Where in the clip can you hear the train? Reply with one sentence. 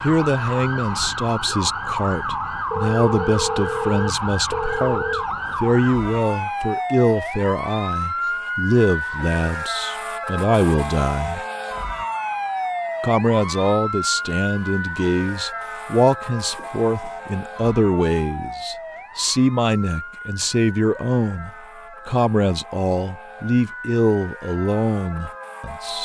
You can't hear the train here.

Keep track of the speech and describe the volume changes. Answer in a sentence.
The loudness of the speech stays about the same.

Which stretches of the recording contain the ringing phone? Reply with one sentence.
You can hear the ringing phone from 2.7 to 5.2 s and from 16.6 to 17.8 s.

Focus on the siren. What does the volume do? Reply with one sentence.
The volume of the siren goes down.